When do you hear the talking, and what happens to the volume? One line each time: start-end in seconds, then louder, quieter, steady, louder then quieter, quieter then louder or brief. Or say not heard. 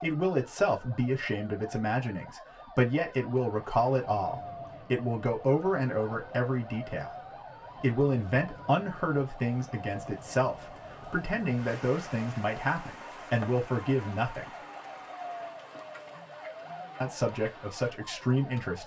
0.0-14.6 steady
17.0-18.8 brief.